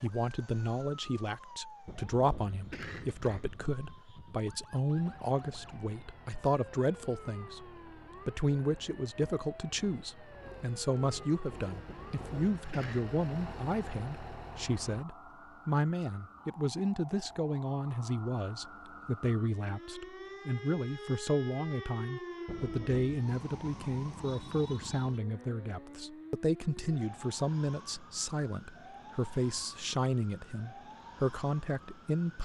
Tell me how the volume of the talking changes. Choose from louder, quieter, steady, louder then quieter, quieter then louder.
steady.